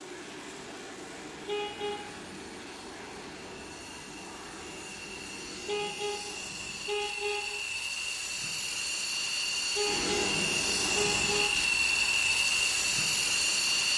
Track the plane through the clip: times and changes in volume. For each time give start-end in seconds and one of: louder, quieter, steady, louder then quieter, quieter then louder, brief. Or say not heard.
0.0-13.9 louder.